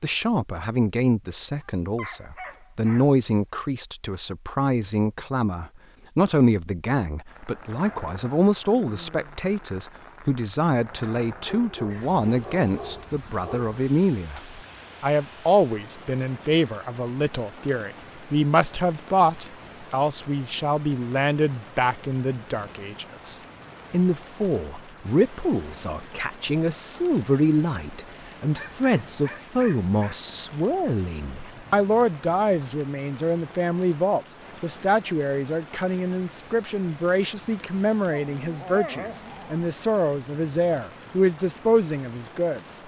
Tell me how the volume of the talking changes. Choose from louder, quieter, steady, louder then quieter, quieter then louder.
steady.